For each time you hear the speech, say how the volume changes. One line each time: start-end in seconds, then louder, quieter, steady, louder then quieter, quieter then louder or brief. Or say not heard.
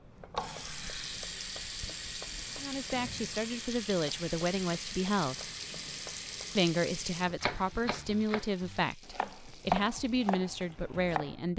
2.6-5.5 brief
6.5-11.5 steady.